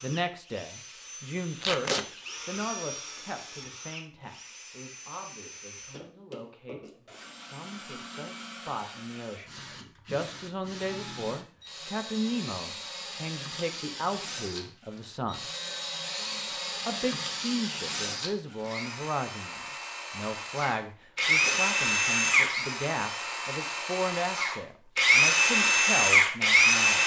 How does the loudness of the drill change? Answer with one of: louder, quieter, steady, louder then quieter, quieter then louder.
louder.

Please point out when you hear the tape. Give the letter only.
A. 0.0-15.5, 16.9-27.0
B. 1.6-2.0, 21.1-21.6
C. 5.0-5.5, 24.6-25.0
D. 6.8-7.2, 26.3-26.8
B.